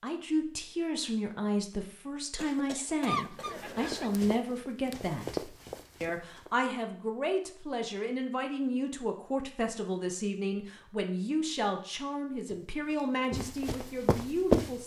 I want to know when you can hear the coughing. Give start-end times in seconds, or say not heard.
2.4-4.2.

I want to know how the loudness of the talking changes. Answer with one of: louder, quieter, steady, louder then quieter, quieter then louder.
steady.